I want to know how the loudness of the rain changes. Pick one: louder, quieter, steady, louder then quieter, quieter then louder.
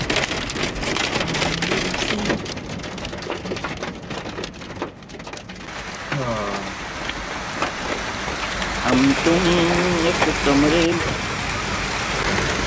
quieter then louder.